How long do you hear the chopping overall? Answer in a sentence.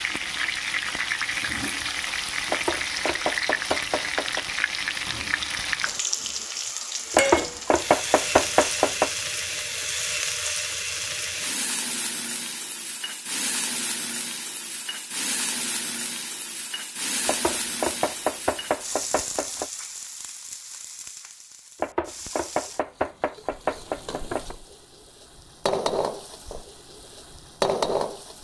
You can hear the chopping for 9 seconds altogether.